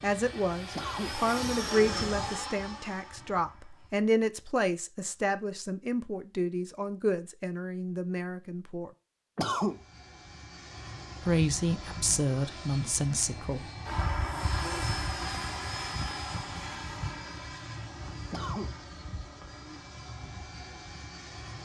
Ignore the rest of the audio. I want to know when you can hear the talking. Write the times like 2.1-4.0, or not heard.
0.0-8.9, 11.2-13.6.